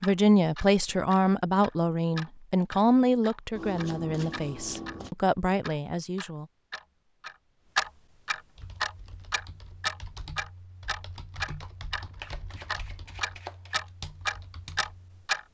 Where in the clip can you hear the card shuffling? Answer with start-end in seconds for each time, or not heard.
3.5-5.1, 12.2-13.8.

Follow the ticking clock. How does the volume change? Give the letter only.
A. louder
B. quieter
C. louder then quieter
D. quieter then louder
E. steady
A.